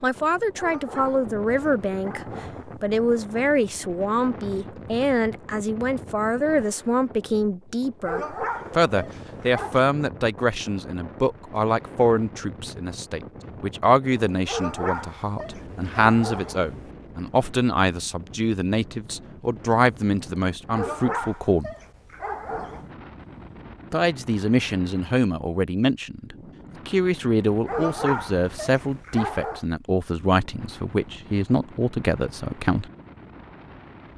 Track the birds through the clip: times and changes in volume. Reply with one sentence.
The birds can't be heard in this clip.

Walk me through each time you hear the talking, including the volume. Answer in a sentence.
You can hear the talking briefly from 0.0 to 2.2 s; from 2.8 to 21.7 s, at a steady volume; and from 23.9 to 32.9 s, at a steady volume.